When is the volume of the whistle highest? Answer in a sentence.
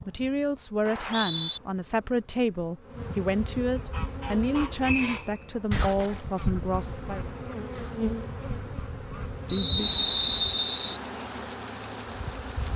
The volume of the whistle peaks at 10 seconds.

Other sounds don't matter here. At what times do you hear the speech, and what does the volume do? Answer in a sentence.
The speech can be heard from 0.1 to 7.3 s, at a steady volume.